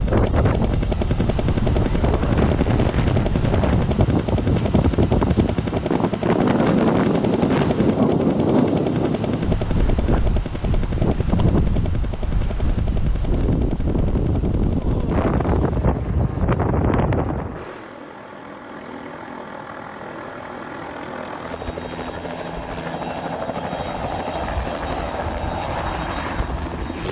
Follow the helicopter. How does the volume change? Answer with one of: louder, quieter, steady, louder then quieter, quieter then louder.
quieter then louder.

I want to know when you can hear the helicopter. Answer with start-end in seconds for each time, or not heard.
0.0-27.0.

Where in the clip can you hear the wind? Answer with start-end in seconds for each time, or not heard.
0.0-17.6.